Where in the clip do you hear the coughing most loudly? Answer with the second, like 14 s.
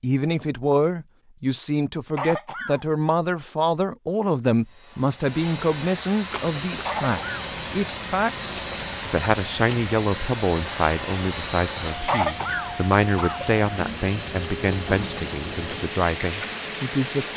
12 s.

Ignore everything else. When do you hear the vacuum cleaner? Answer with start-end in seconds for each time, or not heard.
4.6-17.3.